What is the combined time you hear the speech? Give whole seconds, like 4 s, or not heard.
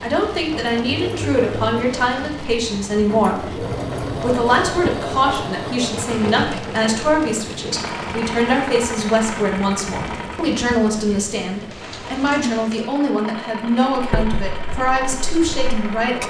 16 s.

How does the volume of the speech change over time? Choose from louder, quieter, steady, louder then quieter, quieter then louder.
steady.